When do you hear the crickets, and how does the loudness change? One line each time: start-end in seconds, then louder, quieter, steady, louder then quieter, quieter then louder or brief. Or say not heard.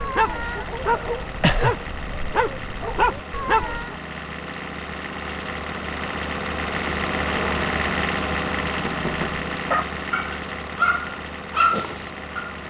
not heard.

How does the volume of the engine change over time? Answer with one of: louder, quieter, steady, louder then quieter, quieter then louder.
louder then quieter.